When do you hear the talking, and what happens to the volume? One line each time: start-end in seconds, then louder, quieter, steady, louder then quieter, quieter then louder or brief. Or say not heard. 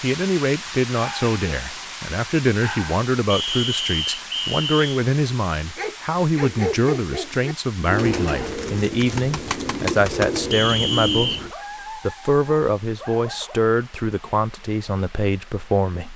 0.0-16.1 steady.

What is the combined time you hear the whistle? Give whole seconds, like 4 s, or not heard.
3 s.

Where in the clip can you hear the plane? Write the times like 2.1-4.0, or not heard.
not heard.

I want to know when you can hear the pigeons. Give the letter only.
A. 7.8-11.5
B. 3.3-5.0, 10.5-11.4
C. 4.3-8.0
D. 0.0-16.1
A.